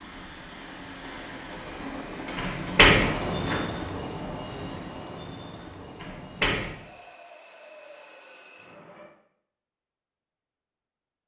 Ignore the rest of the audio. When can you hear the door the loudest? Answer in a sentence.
The loudest moment of the door is at 3 seconds.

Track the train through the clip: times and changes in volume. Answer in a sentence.
You can hear the train from 0.0 to 9.2 s, getting louder then quieter.